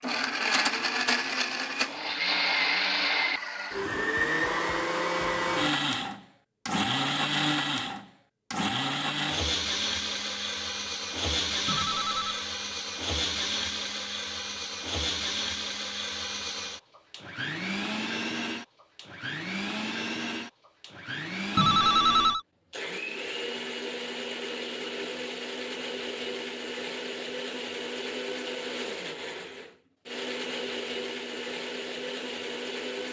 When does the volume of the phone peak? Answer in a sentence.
The volume of the phone peaks at 22 seconds.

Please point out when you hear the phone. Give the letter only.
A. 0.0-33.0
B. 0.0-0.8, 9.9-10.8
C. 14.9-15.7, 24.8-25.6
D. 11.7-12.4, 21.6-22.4
D.